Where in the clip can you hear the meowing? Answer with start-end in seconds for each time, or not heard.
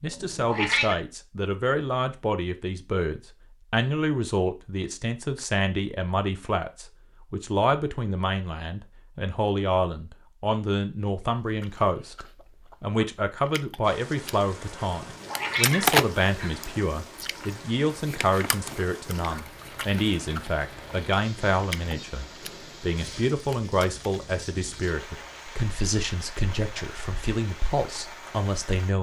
0.1-0.9, 15.0-16.6.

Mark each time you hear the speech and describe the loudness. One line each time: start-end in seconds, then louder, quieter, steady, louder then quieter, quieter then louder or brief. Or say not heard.
0.0-28.9 steady.